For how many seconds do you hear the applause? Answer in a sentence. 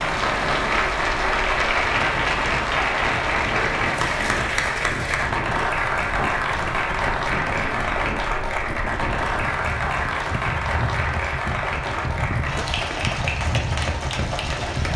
You can hear the applause for 15 seconds altogether.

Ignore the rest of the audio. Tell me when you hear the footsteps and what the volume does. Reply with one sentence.
The footsteps can't be heard in this clip.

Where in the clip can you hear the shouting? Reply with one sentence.
The shouting can't be heard in this clip.